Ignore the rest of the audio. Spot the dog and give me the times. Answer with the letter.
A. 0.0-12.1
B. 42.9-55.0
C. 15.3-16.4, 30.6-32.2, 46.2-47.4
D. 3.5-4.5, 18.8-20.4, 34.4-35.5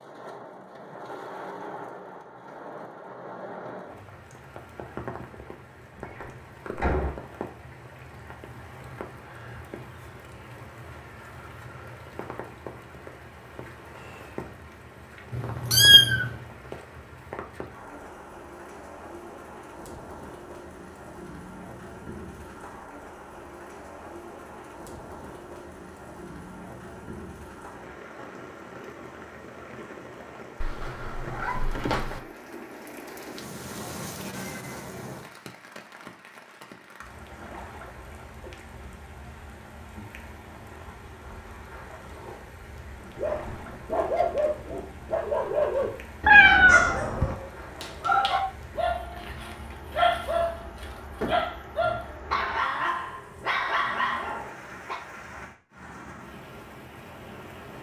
B.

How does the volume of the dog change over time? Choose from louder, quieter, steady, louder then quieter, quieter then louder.
steady.